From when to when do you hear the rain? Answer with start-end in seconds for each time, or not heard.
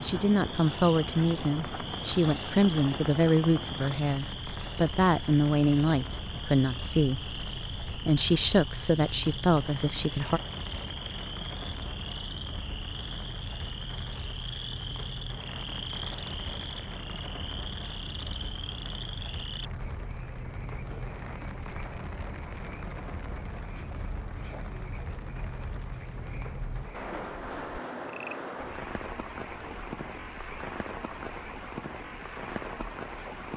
0.0-33.5.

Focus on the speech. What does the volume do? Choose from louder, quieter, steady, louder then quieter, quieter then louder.
steady.